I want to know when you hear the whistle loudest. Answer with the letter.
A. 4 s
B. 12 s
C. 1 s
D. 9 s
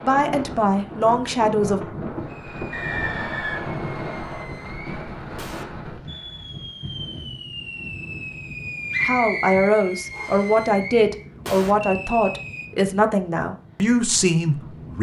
D.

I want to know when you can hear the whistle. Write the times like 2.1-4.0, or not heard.
2.7-4.5, 8.9-10.5.